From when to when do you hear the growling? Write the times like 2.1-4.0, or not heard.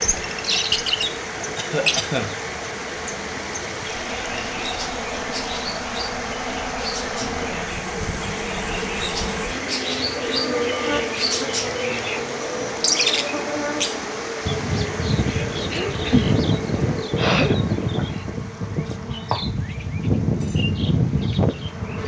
not heard.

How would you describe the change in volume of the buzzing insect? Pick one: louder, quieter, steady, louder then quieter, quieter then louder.
louder then quieter.